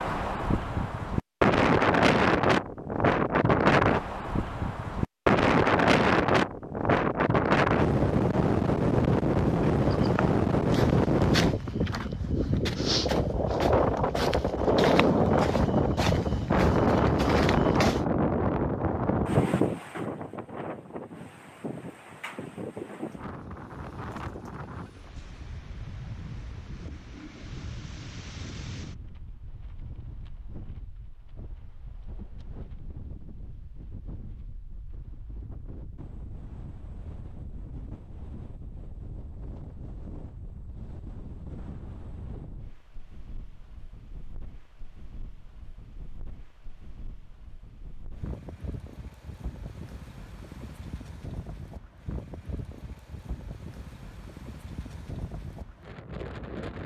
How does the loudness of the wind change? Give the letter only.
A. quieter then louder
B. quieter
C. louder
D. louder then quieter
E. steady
B.